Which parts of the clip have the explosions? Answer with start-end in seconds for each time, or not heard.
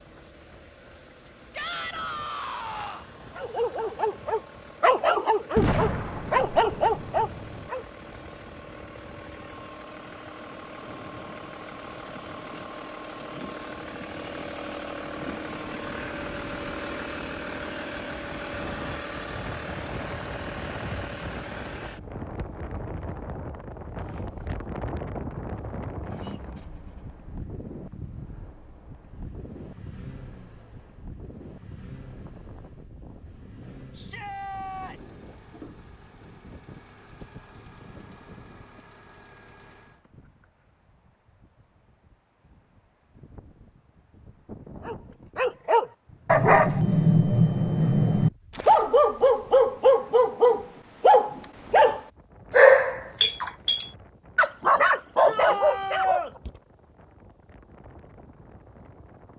5.5-7.7.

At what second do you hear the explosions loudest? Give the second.
6 s.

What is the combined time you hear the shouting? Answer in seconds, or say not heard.
4 s.